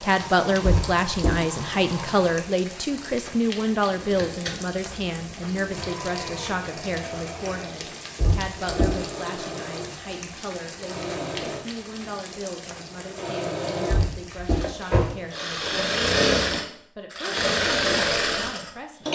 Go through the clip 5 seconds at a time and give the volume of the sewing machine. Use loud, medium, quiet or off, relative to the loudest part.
quiet, quiet, medium, loud.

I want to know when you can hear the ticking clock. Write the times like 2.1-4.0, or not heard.
not heard.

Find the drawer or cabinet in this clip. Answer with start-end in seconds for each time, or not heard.
0.6-1.4, 8.2-9.0, 13.8-15.1.